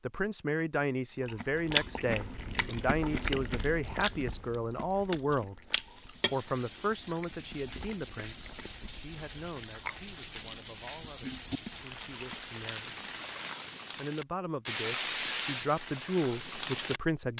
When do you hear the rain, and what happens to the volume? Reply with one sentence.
You can hear the rain from 5.7 to 17.3 s, getting louder.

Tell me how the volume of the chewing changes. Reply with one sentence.
The volume of the chewing goes down.